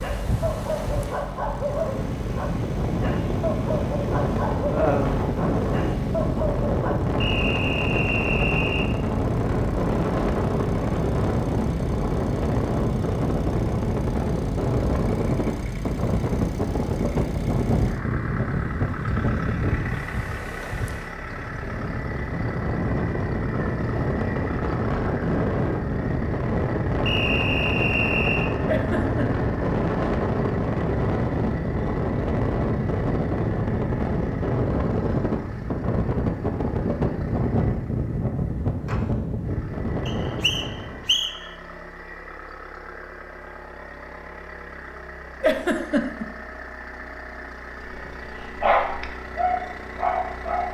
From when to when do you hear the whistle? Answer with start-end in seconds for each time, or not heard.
7.2-8.9, 27.1-28.6, 40.0-41.4.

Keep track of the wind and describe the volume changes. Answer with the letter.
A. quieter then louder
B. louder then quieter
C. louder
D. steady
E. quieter
D.